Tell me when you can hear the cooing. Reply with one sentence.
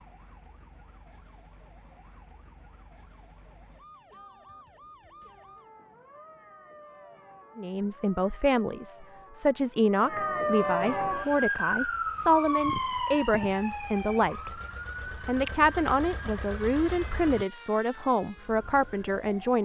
You can't hear the cooing here.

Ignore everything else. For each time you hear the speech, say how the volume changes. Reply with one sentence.
You can hear the speech from 7.5 to 19.6 s, at a steady volume.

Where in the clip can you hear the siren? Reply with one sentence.
The siren can be heard from 0.0 to 19.6 s.